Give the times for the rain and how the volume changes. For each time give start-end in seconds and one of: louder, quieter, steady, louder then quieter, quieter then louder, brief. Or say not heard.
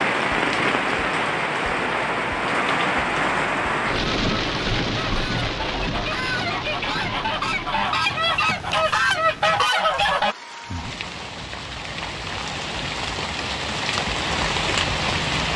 0.0-15.5 quieter then louder.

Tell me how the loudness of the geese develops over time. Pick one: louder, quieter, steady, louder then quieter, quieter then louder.
louder.